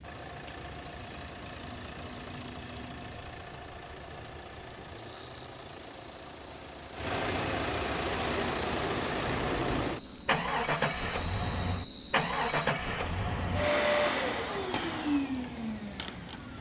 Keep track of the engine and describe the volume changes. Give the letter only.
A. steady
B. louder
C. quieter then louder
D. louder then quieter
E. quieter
B.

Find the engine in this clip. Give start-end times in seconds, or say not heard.
0.0-16.5.